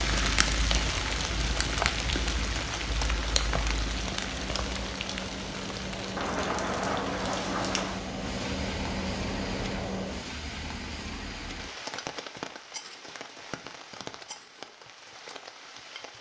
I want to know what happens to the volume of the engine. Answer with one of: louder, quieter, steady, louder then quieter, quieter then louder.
louder.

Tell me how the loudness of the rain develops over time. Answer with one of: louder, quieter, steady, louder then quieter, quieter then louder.
quieter.